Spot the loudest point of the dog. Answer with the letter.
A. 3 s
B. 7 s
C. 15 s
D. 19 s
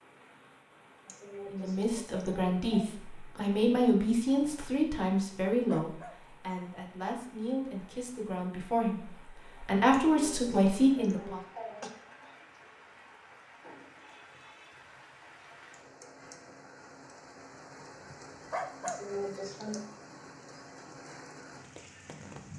D.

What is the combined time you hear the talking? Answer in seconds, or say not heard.
10 s.